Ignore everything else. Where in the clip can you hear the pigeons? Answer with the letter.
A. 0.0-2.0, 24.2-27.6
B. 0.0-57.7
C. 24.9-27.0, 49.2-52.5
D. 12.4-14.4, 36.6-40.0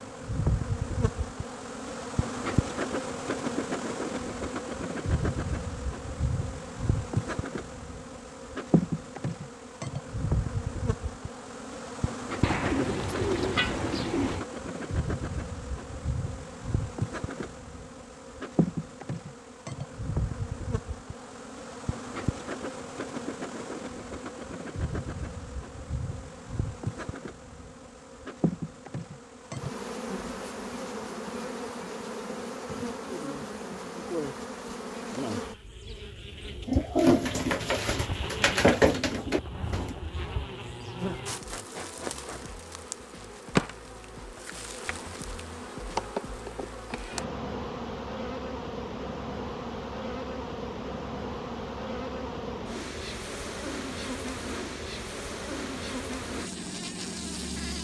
D.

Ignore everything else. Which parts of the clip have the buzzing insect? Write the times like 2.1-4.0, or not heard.
0.0-57.7.